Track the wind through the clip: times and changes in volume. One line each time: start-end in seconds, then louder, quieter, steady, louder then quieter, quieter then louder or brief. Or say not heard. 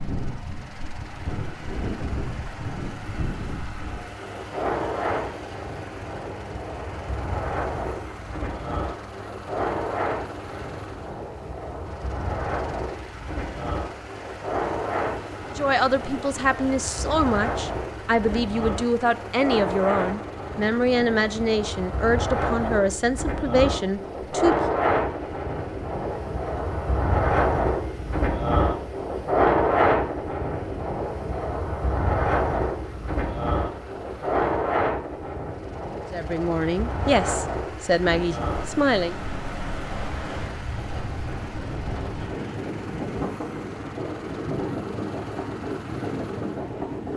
0.0-47.1 louder then quieter.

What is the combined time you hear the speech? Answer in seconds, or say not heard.
12 s.